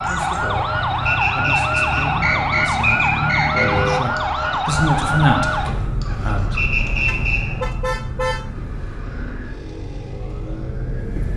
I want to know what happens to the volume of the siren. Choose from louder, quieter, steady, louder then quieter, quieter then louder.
quieter.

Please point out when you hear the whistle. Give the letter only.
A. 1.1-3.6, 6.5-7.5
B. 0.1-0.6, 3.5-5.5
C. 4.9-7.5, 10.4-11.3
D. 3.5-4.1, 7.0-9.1
A.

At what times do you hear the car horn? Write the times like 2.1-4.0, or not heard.
3.5-4.1, 7.0-9.1.